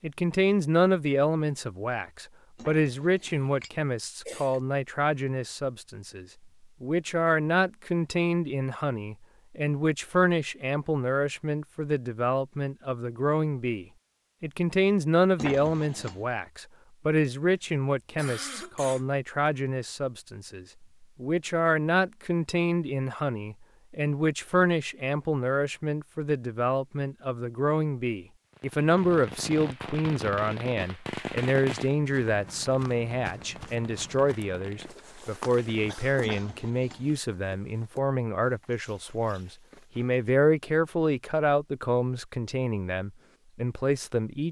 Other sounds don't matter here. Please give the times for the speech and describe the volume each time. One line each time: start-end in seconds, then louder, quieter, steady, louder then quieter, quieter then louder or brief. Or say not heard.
0.0-44.4 steady.